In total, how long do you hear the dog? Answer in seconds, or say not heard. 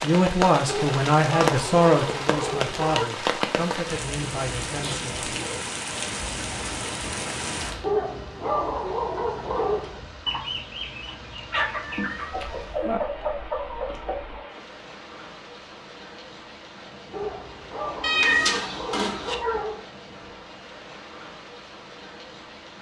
7 s.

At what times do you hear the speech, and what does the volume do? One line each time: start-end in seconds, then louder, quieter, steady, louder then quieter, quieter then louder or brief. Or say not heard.
0.0-5.3 quieter.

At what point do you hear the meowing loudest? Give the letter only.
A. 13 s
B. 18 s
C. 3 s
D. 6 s
B.